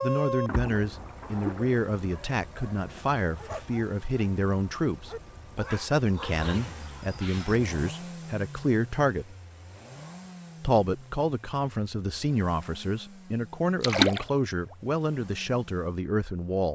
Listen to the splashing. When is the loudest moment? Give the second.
14 s.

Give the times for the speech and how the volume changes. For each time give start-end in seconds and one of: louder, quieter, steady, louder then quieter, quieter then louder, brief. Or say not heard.
0.0-9.3 steady
10.6-16.7 steady.